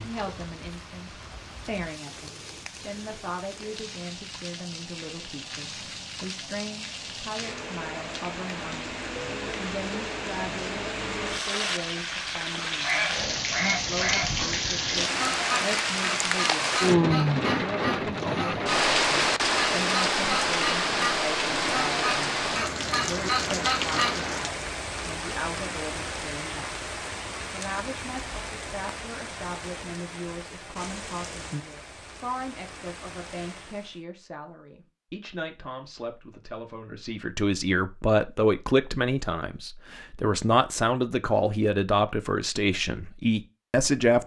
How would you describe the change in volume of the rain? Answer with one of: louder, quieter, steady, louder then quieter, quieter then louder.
louder then quieter.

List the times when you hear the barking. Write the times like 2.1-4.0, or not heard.
not heard.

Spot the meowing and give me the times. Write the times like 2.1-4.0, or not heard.
not heard.